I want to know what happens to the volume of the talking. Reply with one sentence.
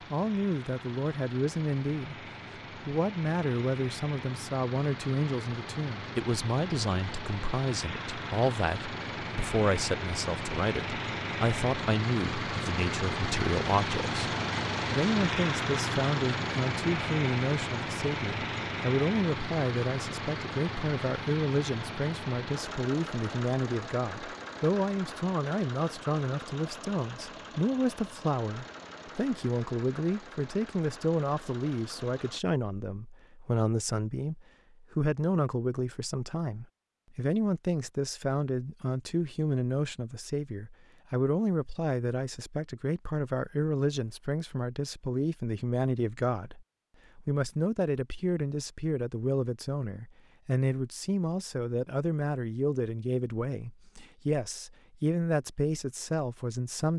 The volume of the talking stays about the same.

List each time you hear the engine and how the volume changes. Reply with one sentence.
The engine can be heard from 0.0 to 32.4 s, getting louder then quieter.